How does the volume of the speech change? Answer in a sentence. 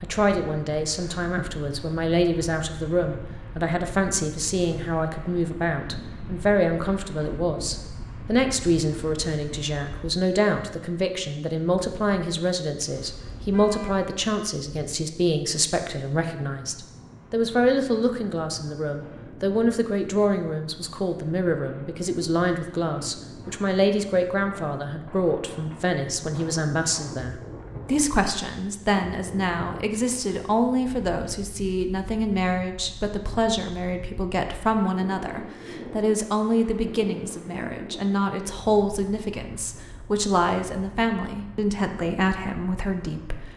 The volume of the speech stays about the same.